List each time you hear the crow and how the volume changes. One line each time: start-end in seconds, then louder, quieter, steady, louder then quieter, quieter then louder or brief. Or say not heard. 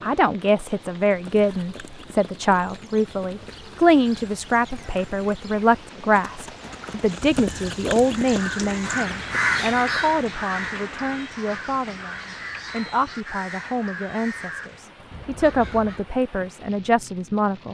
8.1-16.1 quieter.